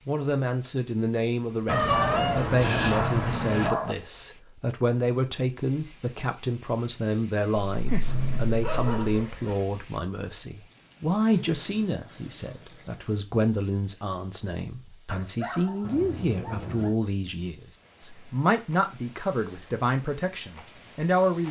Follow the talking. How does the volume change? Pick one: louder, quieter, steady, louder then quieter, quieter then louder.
steady.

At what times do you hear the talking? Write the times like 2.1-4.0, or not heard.
0.1-21.4.